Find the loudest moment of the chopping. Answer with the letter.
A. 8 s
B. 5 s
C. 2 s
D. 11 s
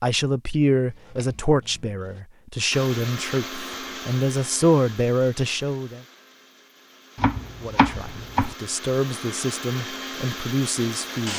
A.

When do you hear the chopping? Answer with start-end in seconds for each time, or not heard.
0.7-2.2, 7.2-8.6.